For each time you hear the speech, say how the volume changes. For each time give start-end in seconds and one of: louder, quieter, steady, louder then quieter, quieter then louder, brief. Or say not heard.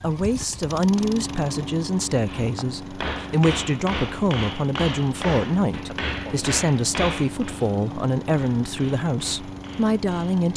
0.0-10.5 steady.